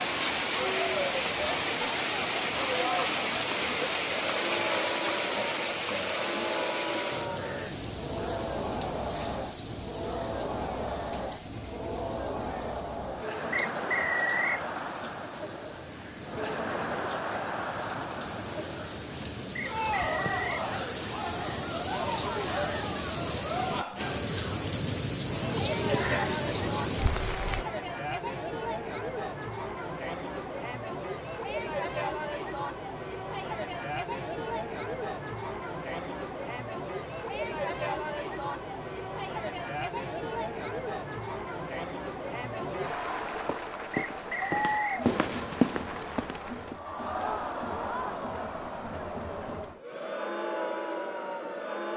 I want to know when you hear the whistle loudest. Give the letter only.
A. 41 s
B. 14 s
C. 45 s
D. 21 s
B.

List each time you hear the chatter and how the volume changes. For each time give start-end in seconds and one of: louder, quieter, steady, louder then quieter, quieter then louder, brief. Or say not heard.
0.0-51.9 steady.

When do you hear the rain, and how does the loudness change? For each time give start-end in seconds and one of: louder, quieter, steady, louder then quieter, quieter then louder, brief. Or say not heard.
0.0-27.6 quieter then louder.